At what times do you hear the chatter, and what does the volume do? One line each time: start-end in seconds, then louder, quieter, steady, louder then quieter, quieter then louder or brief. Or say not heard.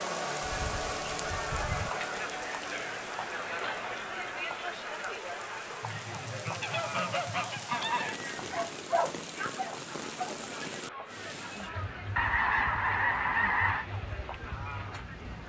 0.0-15.4 quieter.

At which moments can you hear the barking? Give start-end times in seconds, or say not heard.
8.5-10.4.